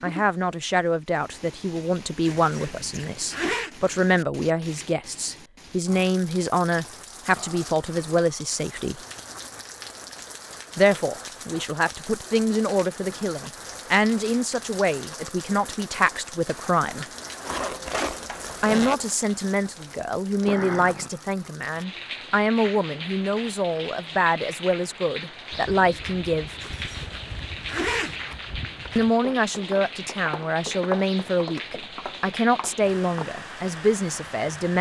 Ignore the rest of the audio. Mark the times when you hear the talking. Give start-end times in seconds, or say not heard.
0.0-9.0, 10.8-17.1, 18.6-26.5, 28.9-34.7.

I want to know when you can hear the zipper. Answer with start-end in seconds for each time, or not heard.
2.2-3.7, 17.4-18.9, 26.6-28.2.